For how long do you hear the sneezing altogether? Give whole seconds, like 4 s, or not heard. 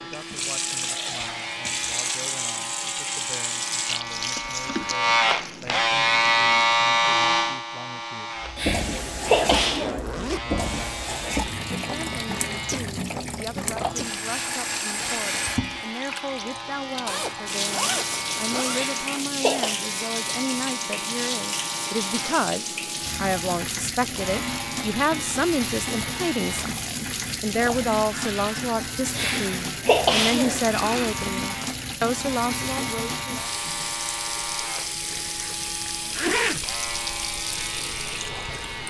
4 s.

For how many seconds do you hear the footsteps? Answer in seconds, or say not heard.
not heard.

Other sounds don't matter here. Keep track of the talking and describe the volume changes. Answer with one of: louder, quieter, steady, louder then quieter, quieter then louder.
louder.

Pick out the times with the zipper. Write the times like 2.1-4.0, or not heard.
9.2-10.6, 17.1-18.9, 35.0-36.6.